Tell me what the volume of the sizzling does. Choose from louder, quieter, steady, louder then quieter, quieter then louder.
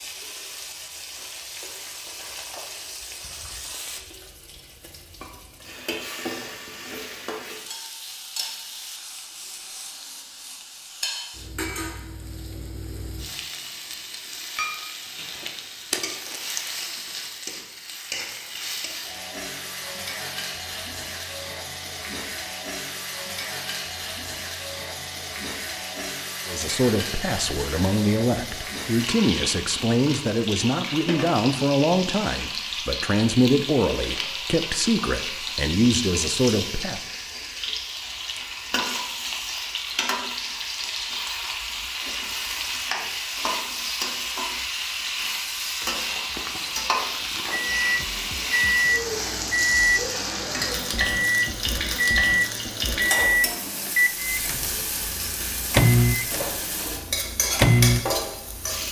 louder.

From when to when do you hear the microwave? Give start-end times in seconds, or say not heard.
47.5-58.8.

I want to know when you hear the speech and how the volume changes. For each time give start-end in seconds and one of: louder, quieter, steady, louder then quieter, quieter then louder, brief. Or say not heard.
26.4-37.0 steady.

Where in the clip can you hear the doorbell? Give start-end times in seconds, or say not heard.
not heard.